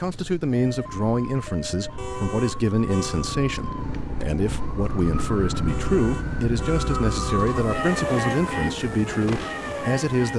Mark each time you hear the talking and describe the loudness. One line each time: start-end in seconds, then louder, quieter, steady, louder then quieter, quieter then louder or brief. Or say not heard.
0.0-10.3 steady.